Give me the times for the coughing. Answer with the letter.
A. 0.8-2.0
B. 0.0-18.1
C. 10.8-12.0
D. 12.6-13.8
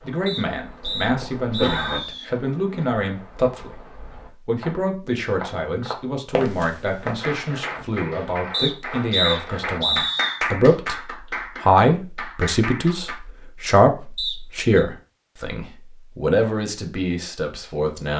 A.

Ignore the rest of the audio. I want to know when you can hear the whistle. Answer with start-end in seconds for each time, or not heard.
0.2-2.2, 8.5-10.4, 14.2-14.8.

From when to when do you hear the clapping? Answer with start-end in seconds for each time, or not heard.
7.0-13.2.